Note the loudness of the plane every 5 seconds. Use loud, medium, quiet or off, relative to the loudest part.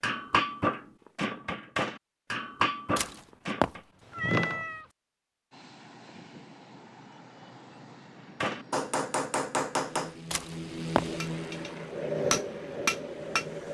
off, medium, loud.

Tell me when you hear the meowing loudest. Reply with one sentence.
The loudest moment of the meowing is at 4 seconds.